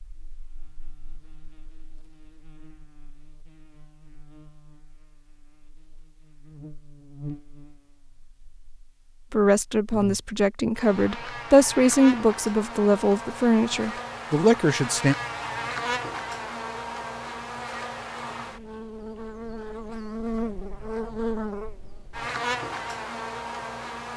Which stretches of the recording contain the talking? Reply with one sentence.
You can hear the talking from 9.3 to 15.2 s.